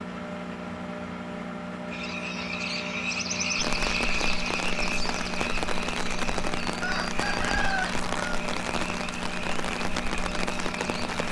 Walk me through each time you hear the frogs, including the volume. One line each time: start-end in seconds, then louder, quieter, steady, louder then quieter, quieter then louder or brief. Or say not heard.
1.9-11.2 quieter.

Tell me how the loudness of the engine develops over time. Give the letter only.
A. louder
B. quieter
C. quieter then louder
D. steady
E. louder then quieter
D.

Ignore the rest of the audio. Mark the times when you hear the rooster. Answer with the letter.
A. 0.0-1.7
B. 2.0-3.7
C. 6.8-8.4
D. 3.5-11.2
C.